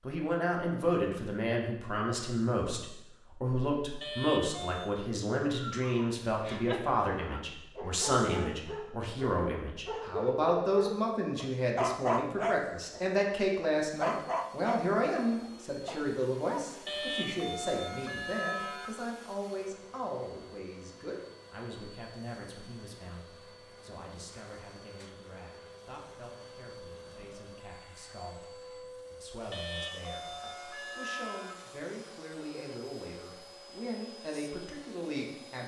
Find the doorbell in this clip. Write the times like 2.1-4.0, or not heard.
4.0-5.0, 16.9-18.9, 29.5-31.6.